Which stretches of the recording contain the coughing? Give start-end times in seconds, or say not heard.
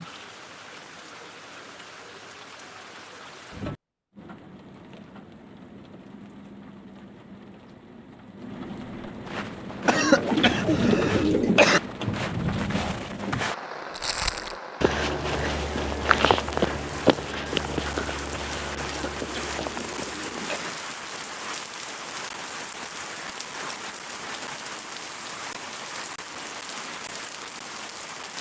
9.8-11.8, 18.8-20.7.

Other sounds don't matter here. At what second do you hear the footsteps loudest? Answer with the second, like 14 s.
16 s.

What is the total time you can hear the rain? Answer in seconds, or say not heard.
28 s.